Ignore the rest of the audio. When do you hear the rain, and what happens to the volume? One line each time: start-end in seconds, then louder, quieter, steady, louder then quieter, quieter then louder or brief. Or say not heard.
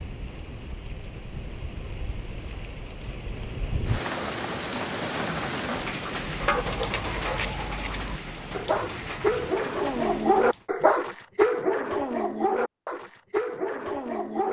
0.0-10.7 louder then quieter.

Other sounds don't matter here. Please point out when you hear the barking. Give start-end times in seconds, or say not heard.
6.2-14.4.